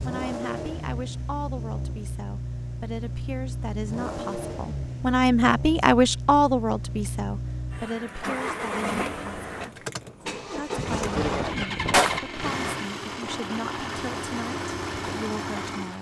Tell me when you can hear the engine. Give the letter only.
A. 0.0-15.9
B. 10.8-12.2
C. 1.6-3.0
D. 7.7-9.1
A.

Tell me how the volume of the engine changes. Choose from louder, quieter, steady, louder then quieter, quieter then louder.
steady.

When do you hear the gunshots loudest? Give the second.
12 s.